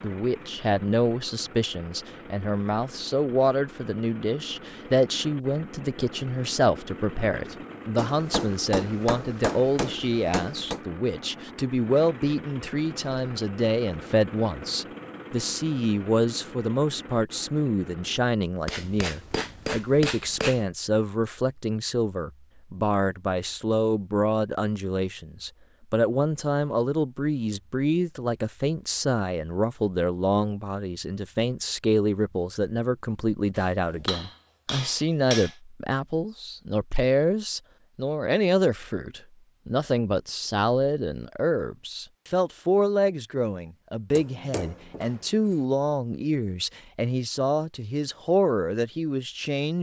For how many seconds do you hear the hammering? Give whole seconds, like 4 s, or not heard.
8 s.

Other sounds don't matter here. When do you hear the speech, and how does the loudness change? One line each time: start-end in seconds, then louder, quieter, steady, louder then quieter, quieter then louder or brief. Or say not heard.
0.0-49.7 steady.